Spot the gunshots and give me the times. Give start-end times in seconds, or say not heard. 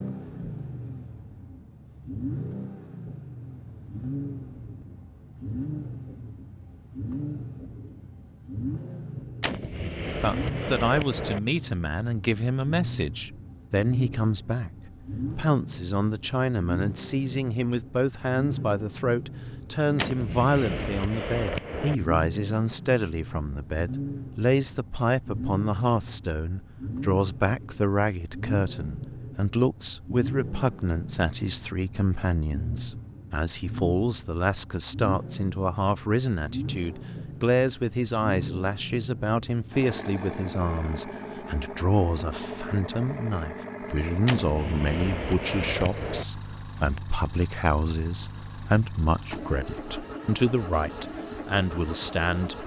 9.4-11.4, 19.9-21.9, 44.2-46.2.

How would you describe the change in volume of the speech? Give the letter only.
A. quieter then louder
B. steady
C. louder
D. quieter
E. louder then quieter
B.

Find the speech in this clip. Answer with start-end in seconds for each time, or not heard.
10.2-52.6.